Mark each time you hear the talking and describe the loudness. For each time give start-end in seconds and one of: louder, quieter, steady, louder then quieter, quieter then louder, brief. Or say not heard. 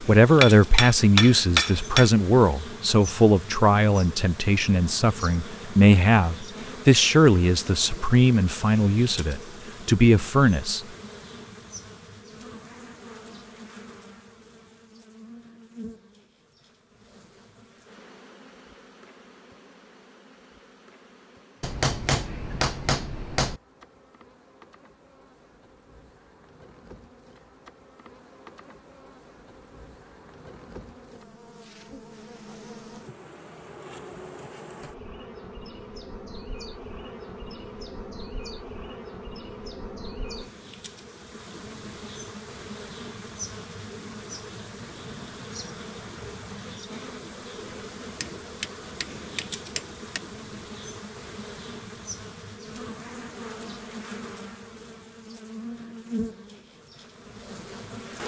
0.0-10.8 steady.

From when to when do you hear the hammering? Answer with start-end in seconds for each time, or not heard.
0.4-2.1, 21.6-23.6, 48.2-50.2.